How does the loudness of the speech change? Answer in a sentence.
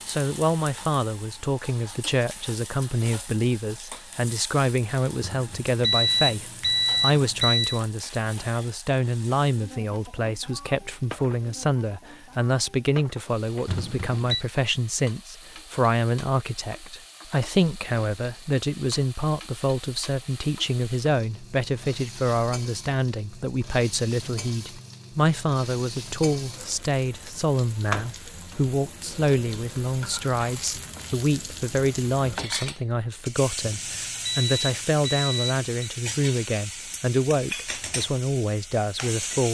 The volume of the speech stays about the same.